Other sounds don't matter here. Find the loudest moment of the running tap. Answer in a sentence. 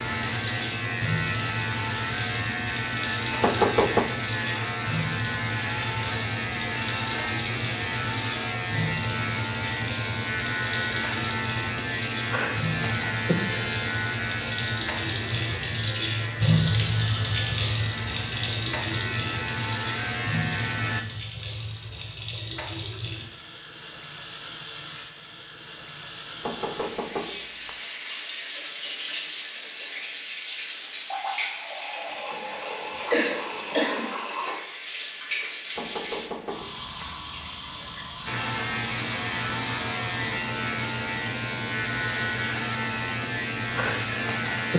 The loudest moment of the running tap is at 17 seconds.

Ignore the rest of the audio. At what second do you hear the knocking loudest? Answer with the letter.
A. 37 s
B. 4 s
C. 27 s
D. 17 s
B.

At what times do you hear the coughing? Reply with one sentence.
You can hear the coughing from 33.1 to 34.0 s.